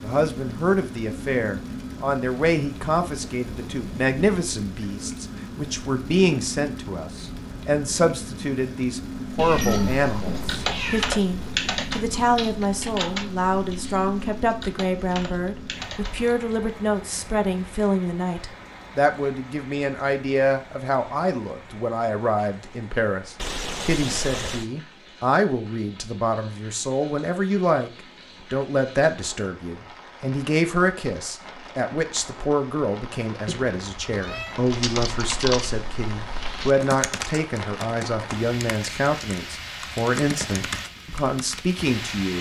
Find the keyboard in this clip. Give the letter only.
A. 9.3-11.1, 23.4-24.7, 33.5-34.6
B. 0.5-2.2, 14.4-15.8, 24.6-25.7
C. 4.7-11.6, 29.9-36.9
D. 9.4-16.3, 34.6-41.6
D.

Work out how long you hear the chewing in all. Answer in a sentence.
The chewing can't be heard in this clip.